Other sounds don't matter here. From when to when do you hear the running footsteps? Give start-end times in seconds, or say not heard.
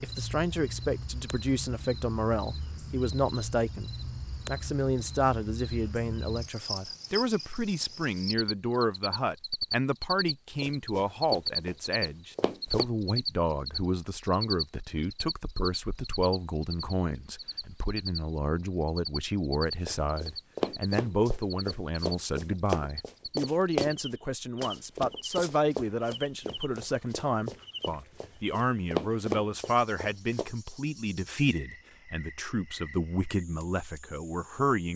10.6-12.8, 19.9-23.9, 24.6-30.4.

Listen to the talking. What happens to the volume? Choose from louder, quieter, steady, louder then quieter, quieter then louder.
steady.